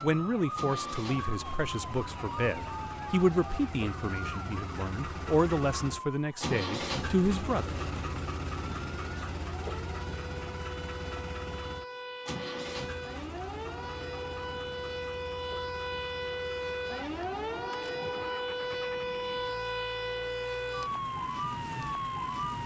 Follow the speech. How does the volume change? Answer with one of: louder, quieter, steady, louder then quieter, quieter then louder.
steady.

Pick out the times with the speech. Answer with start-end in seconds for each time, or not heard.
0.0-7.8.